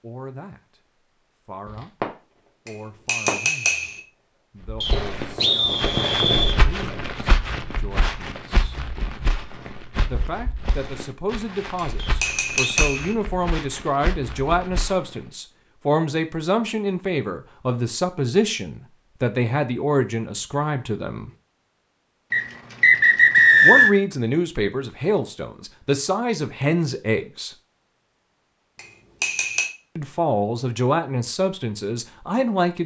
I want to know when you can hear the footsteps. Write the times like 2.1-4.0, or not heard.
4.7-15.1.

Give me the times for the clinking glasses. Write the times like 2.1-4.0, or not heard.
2.6-4.0, 11.8-13.2, 28.8-29.7.